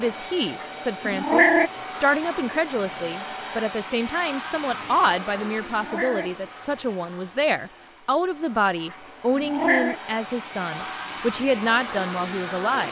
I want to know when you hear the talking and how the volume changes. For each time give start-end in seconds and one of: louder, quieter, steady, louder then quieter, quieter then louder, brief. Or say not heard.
0.0-12.8 steady.